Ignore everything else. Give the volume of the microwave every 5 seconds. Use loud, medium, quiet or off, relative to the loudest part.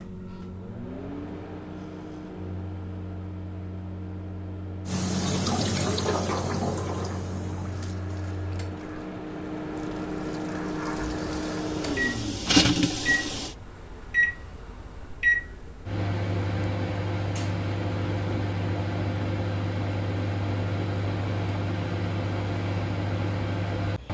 medium, medium, loud, loud, loud.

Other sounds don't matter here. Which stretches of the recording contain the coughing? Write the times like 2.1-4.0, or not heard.
not heard.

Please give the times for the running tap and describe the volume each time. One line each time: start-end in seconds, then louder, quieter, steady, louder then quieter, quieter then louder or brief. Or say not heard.
4.8-13.6 quieter then louder.